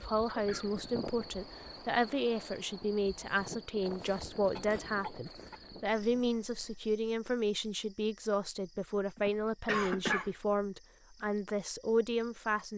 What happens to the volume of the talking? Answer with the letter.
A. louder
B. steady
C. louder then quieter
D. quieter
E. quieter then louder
B.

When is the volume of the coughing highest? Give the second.
10 s.